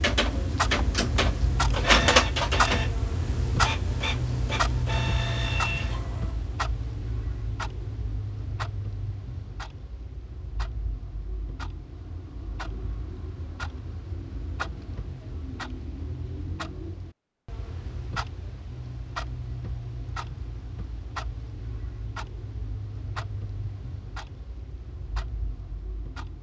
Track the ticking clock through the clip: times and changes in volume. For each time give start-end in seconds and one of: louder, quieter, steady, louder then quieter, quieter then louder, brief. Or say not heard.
0.0-26.3 quieter.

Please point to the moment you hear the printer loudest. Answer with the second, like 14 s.
2 s.